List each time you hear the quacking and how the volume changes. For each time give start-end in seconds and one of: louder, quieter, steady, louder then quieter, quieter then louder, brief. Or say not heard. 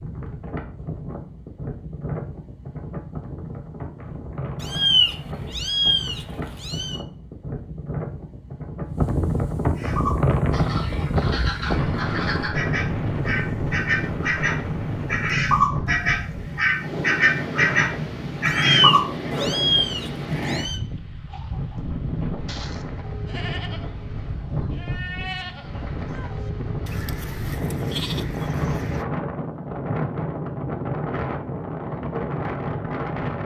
9.8-19.7 louder.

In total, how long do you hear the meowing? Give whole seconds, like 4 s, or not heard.
5 s.